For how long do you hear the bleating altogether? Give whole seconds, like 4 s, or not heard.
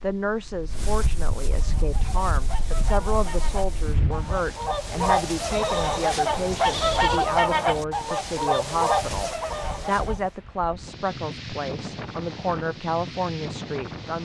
2 s.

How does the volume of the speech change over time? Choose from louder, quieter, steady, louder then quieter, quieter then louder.
steady.